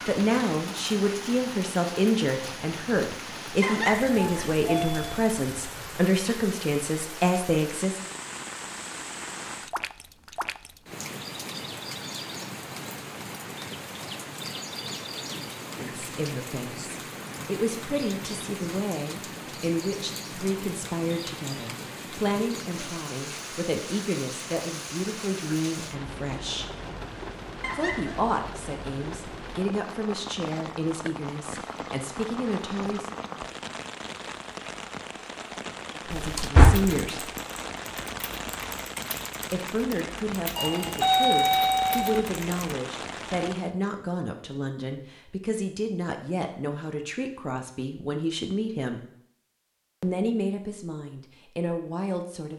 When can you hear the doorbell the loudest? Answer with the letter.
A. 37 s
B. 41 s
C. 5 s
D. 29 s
B.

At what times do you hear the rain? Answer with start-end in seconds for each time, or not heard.
0.0-43.8.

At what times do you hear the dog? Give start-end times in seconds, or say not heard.
not heard.